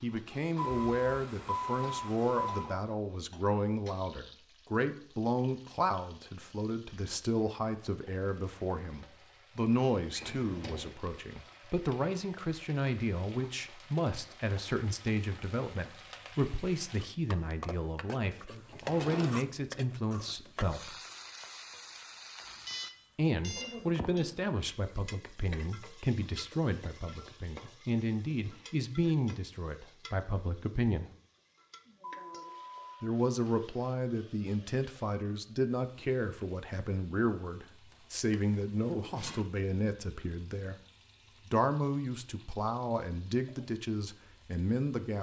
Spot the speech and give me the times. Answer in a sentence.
You can hear the speech from 0.0 to 20.9 s, from 23.1 to 31.1 s, from 33.0 to 40.8 s and from 41.5 to 45.1 s.